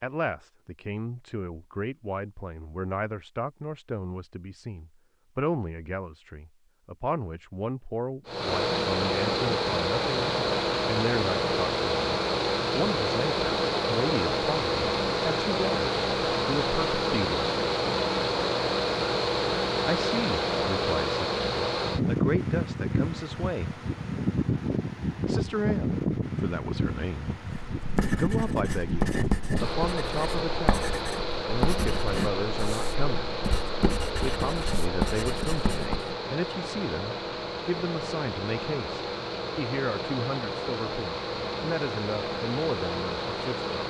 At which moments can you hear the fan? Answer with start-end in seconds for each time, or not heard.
8.2-43.8.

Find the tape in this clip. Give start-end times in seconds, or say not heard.
not heard.